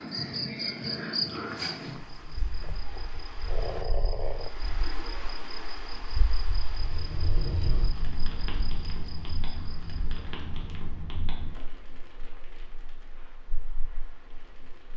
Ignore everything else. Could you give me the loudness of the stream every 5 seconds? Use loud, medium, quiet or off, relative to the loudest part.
loud, loud, quiet.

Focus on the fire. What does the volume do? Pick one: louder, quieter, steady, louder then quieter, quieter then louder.
quieter.